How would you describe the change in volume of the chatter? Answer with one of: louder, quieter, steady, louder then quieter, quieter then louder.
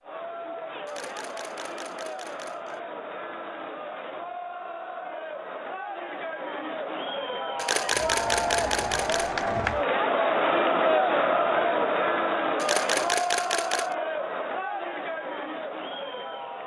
louder then quieter.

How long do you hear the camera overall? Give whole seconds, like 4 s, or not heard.
5 s.